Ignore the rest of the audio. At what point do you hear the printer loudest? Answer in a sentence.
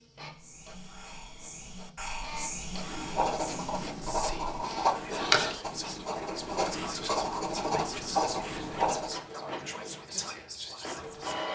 The loudest moment of the printer is at 11 seconds.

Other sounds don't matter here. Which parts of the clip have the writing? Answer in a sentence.
You can hear the writing from 2.7 to 9.2 s.